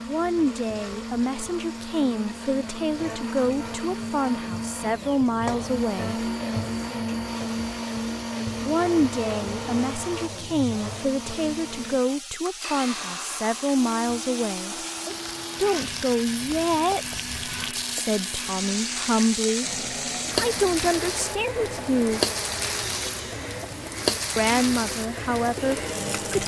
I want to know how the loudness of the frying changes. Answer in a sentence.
The volume of the frying goes up.